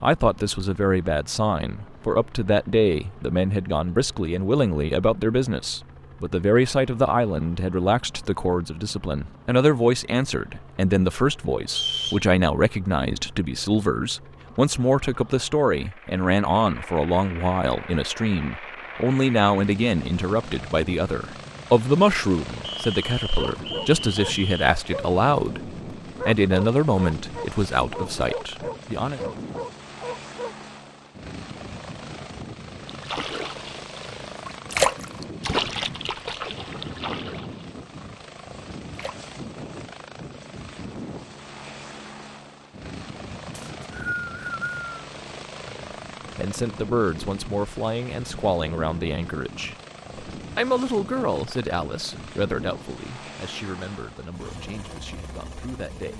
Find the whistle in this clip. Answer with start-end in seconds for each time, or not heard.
11.7-12.2, 22.6-24.7, 43.5-44.9.